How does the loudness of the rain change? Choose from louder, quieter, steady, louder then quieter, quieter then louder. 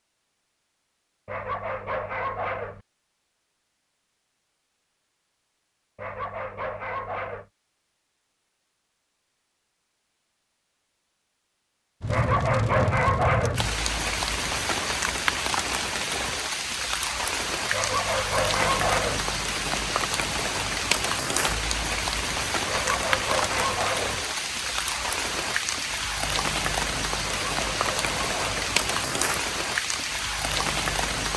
steady.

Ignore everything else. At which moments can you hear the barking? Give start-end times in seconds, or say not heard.
1.2-2.8, 6.0-7.5, 12.1-13.7, 17.7-19.2, 22.6-24.2, 27.2-28.6.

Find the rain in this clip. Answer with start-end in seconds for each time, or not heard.
12.0-31.3.